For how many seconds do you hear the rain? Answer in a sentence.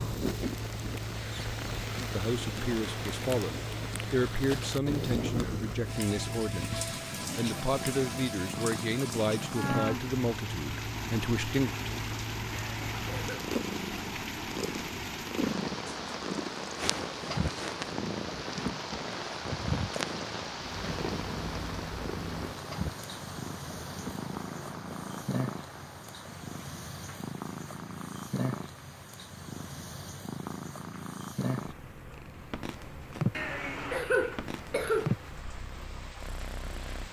The rain can be heard for 37 seconds in total.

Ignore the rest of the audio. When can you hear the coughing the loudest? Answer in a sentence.
The loudest moment of the coughing is at 34 seconds.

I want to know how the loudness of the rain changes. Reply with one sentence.
The loudness of the rain goes down.